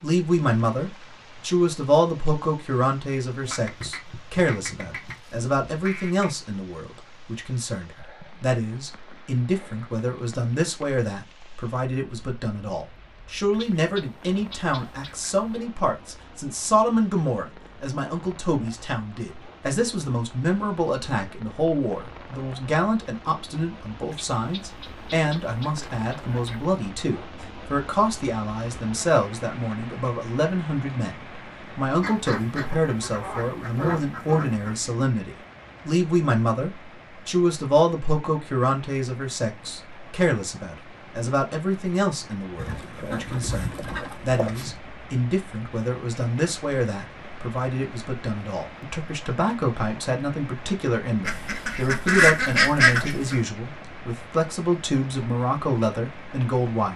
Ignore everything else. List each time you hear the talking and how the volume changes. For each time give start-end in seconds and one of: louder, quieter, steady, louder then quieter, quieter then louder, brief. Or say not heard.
0.0-56.9 steady.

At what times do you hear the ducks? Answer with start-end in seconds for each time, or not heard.
3.5-6.3, 13.5-15.3, 24.1-26.6, 32.0-34.8, 42.5-44.8, 51.2-53.4.